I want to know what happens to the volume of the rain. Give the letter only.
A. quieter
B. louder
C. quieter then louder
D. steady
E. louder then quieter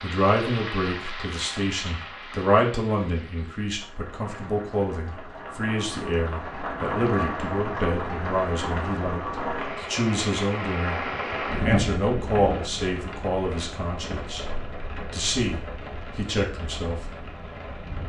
E.